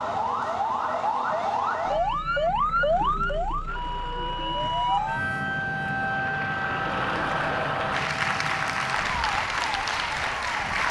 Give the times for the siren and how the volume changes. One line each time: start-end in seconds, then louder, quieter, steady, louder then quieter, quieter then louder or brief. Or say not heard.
0.0-10.8 quieter.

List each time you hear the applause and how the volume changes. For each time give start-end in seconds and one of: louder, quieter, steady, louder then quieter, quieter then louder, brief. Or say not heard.
3.6-10.8 louder.